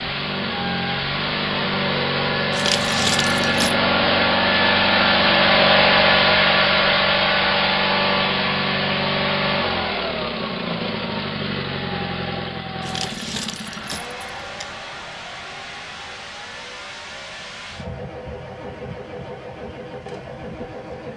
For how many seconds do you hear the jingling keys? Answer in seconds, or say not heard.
3 s.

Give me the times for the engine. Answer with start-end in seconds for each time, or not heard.
0.0-21.1.